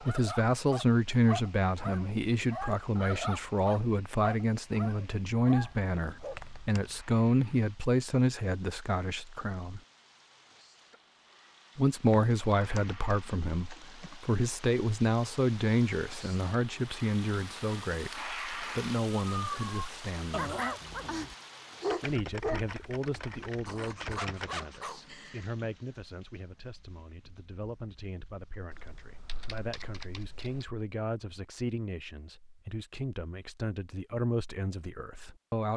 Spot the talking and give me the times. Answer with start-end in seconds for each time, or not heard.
0.0-9.8, 11.8-20.6, 22.0-35.7.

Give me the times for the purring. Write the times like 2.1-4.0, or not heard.
not heard.